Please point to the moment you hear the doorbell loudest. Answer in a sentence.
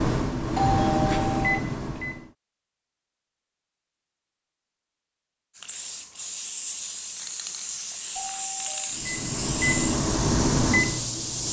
The volume of the doorbell peaks at 1 second.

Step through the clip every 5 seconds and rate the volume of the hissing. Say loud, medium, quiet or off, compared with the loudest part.
off, loud, loud.